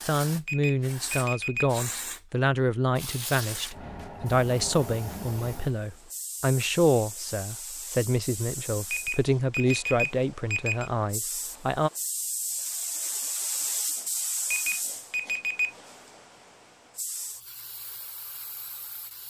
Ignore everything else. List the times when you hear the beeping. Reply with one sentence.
You can hear the beeping from 0.5 to 1.7 s, from 8.9 to 10.9 s and from 14.5 to 15.8 s.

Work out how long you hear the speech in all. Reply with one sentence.
The speech can be heard for 12 seconds in total.